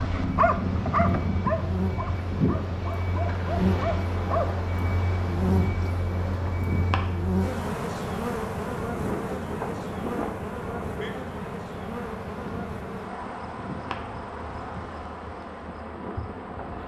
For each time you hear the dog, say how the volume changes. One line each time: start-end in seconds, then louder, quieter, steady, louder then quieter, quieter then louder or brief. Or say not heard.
0.0-4.5 quieter then louder.